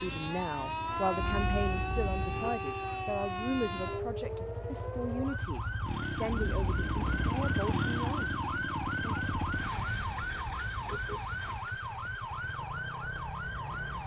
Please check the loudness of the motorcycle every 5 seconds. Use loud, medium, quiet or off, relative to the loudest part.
medium, loud, medium.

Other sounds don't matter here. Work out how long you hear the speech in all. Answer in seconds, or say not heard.
9 s.